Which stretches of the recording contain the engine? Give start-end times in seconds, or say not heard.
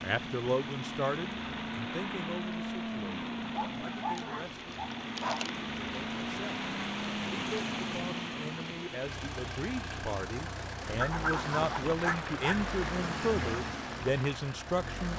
0.0-15.1.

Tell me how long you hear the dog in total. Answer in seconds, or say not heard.
4 s.